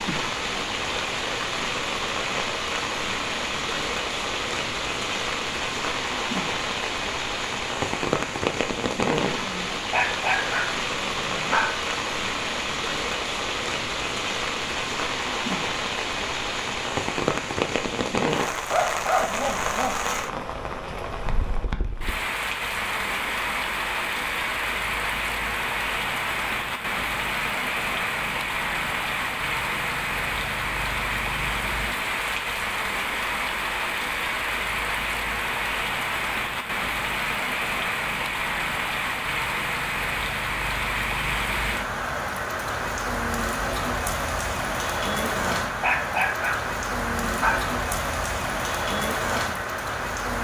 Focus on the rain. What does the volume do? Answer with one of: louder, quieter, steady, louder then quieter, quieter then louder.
steady.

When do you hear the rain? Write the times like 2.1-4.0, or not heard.
0.0-50.3.